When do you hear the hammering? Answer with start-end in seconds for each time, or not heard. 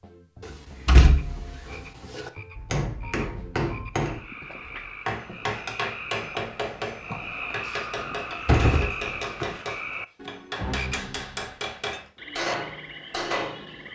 2.5-13.9.